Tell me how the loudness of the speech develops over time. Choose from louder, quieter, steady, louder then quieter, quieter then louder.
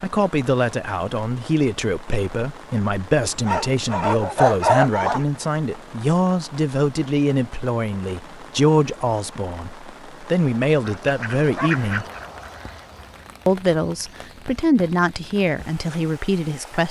steady.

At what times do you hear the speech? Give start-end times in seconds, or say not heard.
0.0-12.1, 13.4-16.8.